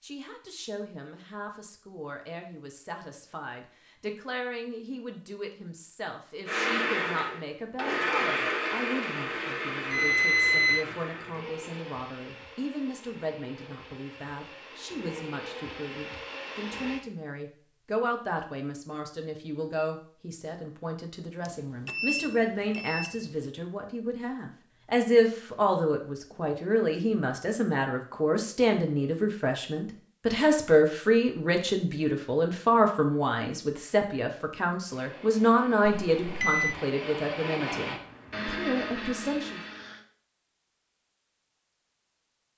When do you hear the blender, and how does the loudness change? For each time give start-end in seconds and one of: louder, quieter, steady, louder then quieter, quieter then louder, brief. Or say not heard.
6.5-17.0 quieter then louder
34.9-40.0 louder.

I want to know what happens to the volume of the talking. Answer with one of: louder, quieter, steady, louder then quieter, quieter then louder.
louder.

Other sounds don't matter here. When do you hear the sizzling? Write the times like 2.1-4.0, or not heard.
not heard.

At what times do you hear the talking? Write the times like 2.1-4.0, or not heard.
0.0-39.6.